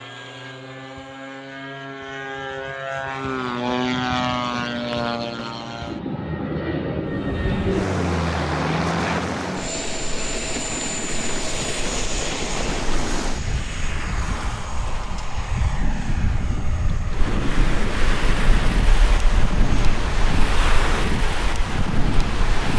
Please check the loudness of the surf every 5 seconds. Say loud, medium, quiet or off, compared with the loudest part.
off, medium, medium, loud, loud.